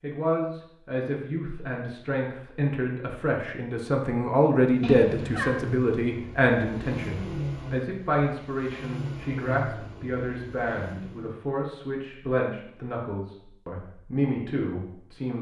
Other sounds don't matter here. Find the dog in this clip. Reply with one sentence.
You can't hear the dog here.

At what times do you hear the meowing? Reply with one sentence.
The meowing can be heard from 4.8 to 5.5 s.